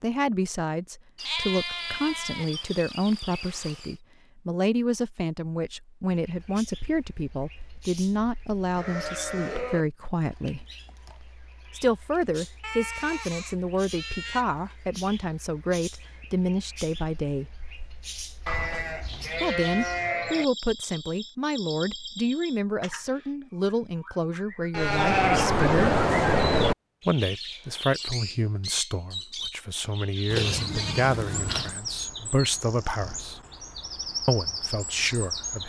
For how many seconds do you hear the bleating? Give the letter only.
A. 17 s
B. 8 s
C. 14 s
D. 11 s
D.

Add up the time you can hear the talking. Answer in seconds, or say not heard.
31 s.